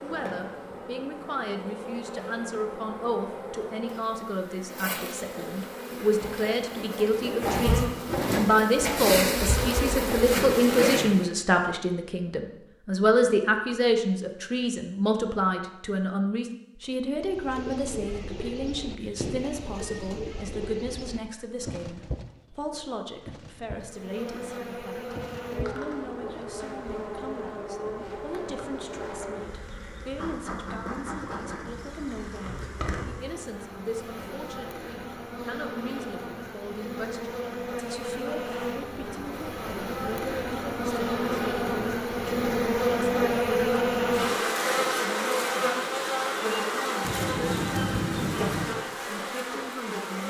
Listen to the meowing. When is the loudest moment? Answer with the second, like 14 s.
48 s.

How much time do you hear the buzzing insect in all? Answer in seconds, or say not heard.
38 s.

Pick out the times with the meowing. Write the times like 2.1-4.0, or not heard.
19.0-20.0, 47.0-48.7.